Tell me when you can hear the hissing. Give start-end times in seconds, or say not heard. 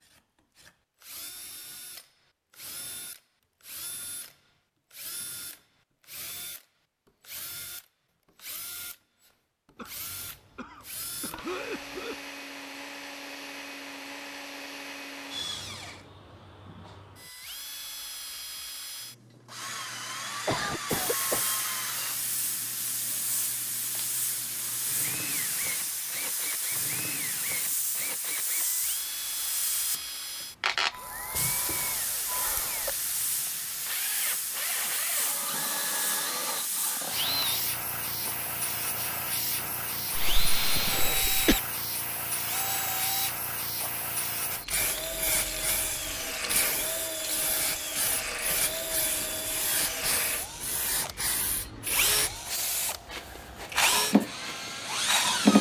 20.9-55.5.